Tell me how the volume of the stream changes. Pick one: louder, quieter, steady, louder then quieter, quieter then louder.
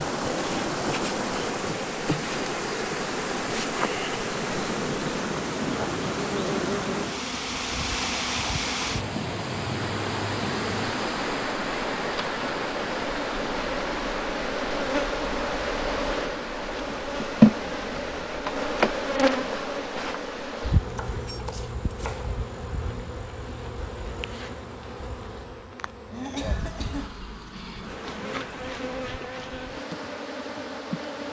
quieter.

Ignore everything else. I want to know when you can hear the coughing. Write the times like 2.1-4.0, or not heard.
26.1-27.1.